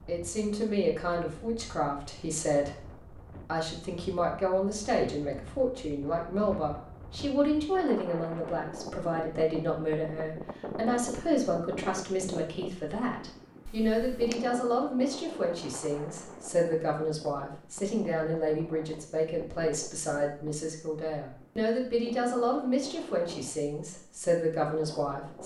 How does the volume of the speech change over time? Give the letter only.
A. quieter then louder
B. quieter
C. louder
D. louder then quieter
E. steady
E.